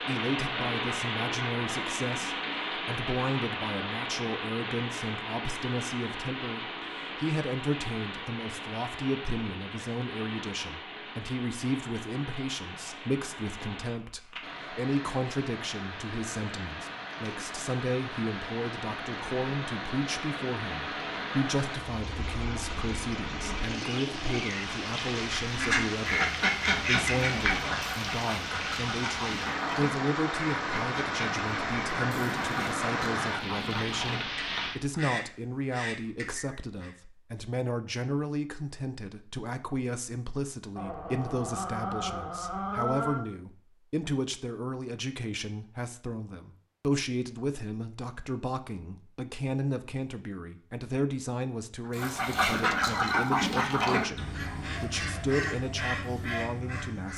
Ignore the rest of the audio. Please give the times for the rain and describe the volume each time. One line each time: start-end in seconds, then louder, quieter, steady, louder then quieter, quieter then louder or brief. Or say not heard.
0.0-34.8 quieter then louder.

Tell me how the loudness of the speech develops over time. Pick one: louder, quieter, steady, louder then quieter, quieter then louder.
steady.